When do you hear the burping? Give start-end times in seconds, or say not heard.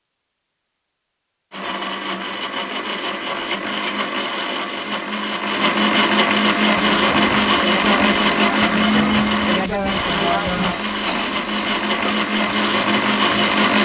not heard.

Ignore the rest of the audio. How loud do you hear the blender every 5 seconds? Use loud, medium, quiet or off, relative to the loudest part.
medium, loud, loud.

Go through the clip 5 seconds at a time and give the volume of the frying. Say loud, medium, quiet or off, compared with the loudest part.
off, loud, loud.